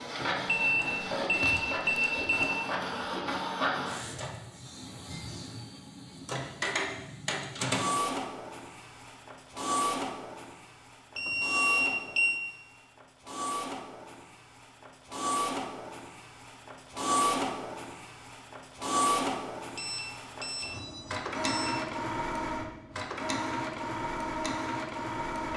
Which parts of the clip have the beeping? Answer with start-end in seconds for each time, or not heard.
0.5-2.5, 11.2-12.4, 19.8-21.8.